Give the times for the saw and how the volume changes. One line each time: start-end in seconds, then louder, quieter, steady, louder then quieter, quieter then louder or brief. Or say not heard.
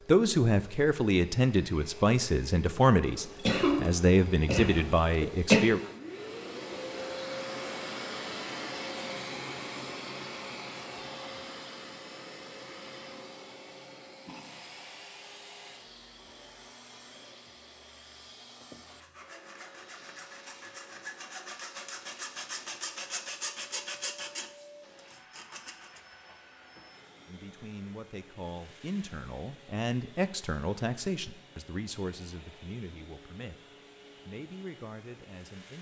18.8-26.0 louder then quieter.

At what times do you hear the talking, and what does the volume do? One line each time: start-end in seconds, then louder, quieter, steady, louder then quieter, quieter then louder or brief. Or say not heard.
0.1-5.8 steady
27.2-33.6 louder then quieter
34.2-35.7 brief.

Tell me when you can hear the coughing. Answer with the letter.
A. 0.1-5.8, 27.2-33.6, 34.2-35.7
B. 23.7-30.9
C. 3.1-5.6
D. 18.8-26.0
C.